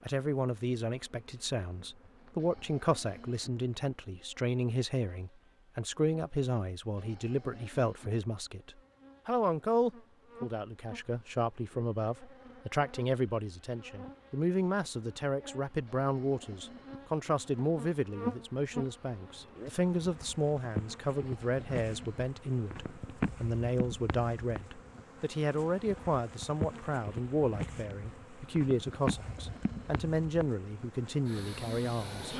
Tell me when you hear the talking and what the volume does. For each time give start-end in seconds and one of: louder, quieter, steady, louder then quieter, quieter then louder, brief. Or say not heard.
0.0-32.3 steady.